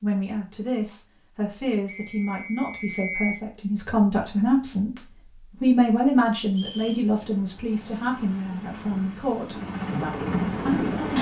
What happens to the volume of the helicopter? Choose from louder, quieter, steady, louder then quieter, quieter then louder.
louder.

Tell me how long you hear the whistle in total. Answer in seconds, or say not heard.
2 s.